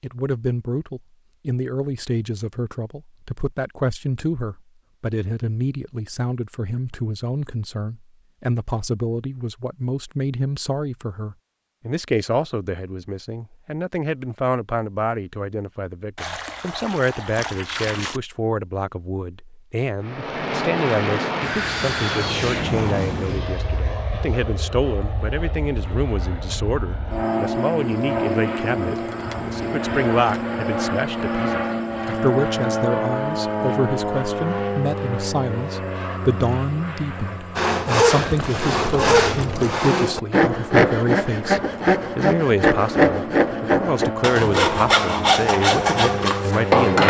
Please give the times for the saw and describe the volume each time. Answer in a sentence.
You can hear the saw from 37.5 to 47.0 s, at a steady volume.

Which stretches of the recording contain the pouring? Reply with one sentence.
You can hear the pouring from 16.1 to 18.2 s and from 38.1 to 39.9 s.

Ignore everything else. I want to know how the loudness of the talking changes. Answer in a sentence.
The volume of the talking stays about the same.